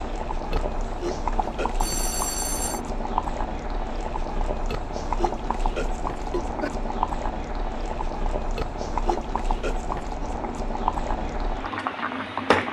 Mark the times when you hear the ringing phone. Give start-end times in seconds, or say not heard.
1.8-2.8.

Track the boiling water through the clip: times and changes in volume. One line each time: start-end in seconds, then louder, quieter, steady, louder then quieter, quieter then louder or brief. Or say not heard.
0.0-12.6 steady.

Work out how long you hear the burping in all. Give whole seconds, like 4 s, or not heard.
5 s.